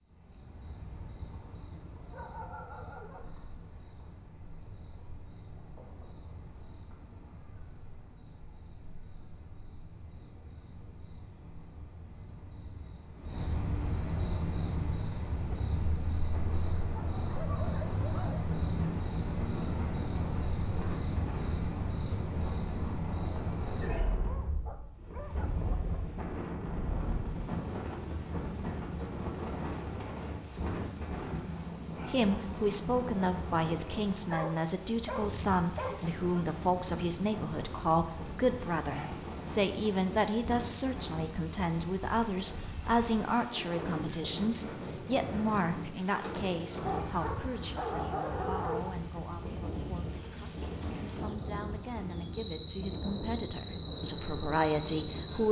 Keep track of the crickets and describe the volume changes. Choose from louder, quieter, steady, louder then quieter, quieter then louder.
louder.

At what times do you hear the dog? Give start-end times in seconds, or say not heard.
1.8-3.5, 16.8-18.6, 24.2-26.1, 34.2-36.5, 46.9-49.0.